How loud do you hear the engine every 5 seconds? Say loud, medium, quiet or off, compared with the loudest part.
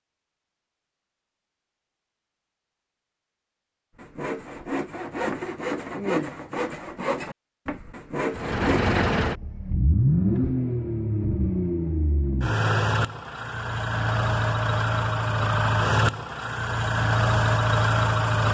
off, loud, loud, loud.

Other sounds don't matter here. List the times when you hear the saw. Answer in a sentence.
The saw can be heard from 4.0 to 9.0 s.